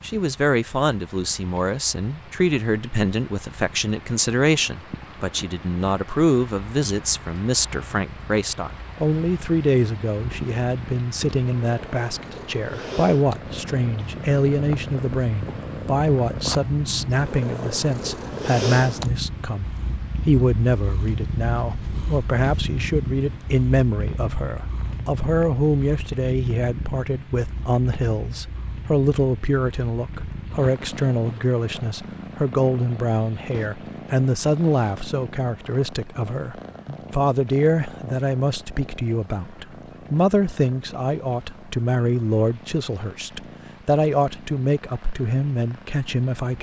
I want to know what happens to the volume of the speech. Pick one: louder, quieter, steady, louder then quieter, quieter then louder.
steady.